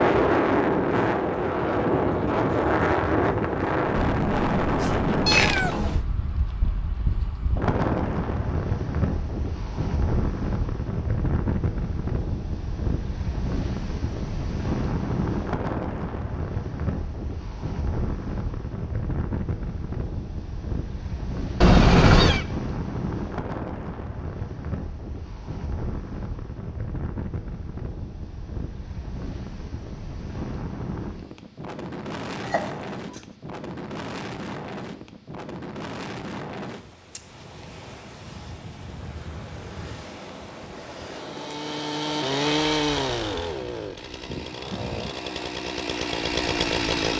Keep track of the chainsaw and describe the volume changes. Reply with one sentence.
The loudness of the chainsaw goes down, then up.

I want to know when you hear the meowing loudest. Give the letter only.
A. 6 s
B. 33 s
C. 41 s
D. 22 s
D.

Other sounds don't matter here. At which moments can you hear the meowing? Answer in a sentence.
You can hear the meowing from 5.2 to 6.0 s, from 21.6 to 22.4 s and from 32.4 to 33.2 s.